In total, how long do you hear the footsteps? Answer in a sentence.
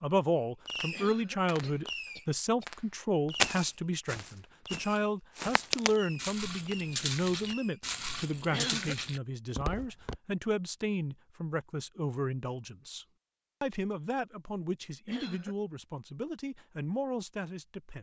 The footsteps can be heard for 7 seconds in total.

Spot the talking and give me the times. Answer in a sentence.
The talking can be heard from 0.0 to 17.9 s.